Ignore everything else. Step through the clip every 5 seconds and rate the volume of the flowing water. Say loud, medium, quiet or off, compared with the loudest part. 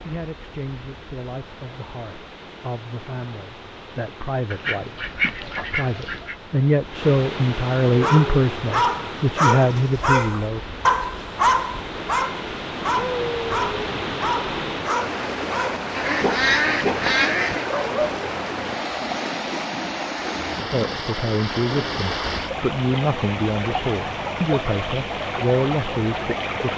quiet, medium, loud, loud, loud, loud.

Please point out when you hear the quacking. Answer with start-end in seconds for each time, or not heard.
4.5-6.3, 15.9-17.6.